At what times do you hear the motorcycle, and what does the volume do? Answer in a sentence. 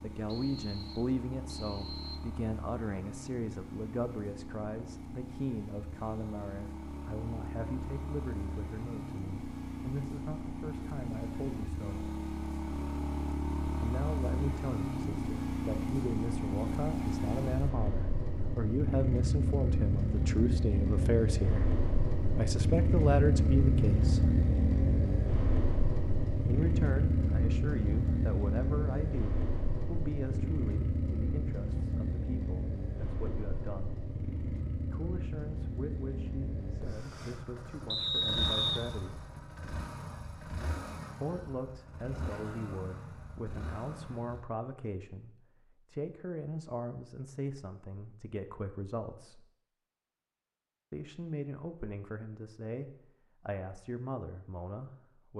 The motorcycle can be heard from 0.0 to 44.5 s, getting louder then quieter.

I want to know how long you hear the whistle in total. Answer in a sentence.
You can hear the whistle for 3 seconds altogether.